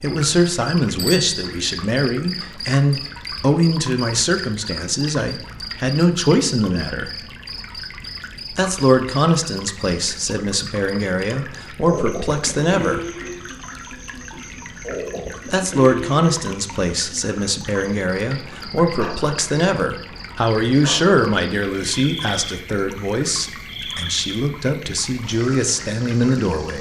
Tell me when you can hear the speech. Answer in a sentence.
The speech can be heard from 0.0 to 7.1 s, from 8.5 to 13.1 s and from 15.4 to 26.7 s.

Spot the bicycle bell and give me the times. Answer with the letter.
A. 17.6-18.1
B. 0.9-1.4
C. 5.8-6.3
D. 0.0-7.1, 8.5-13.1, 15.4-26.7
B.